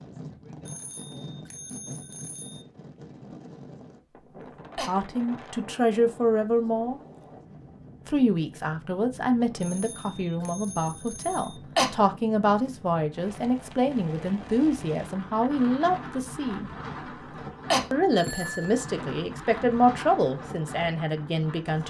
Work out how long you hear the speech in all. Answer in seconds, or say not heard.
15 s.